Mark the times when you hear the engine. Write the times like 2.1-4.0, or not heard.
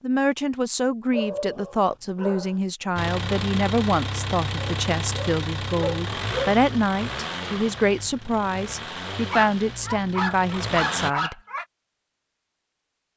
3.0-11.1.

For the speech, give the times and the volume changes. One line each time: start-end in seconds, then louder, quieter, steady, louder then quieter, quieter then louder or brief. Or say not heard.
0.0-11.3 steady.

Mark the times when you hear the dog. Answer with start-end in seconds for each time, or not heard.
1.1-2.5, 4.5-6.5, 9.3-11.7.